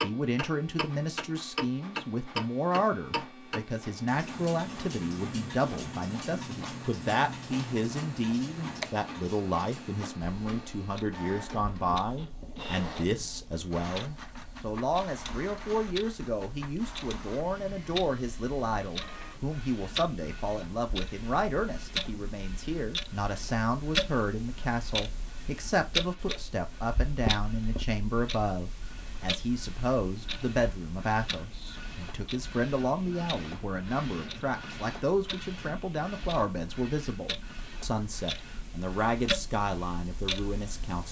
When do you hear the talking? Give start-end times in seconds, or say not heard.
0.0-41.0.